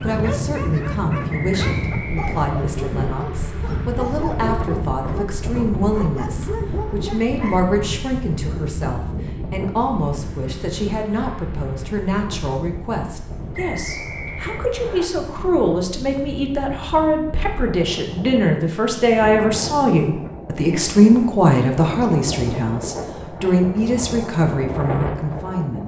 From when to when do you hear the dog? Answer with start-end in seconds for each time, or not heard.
0.0-7.7.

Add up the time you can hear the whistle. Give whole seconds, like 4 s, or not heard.
3 s.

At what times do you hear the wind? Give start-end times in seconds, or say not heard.
0.0-25.8.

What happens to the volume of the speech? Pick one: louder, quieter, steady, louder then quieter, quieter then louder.
louder.